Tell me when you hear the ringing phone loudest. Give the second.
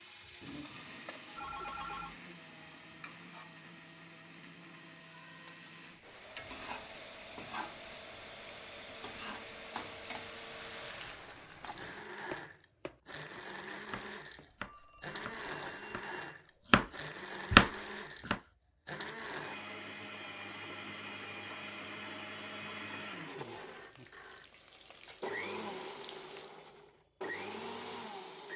2 s.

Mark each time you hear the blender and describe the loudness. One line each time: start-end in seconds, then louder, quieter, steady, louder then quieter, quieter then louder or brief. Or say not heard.
0.0-28.5 louder.